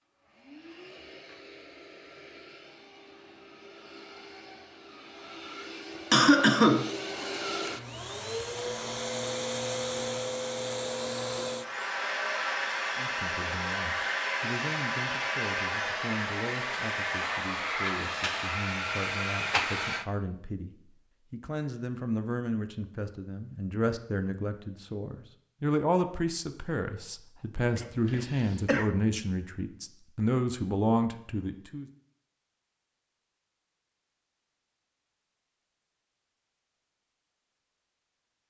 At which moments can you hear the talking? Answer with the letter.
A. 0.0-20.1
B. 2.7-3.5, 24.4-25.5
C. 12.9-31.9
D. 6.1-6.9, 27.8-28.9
C.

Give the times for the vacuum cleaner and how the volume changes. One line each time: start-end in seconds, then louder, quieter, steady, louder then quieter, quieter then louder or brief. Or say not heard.
0.0-20.1 louder.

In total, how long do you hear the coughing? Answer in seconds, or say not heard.
2 s.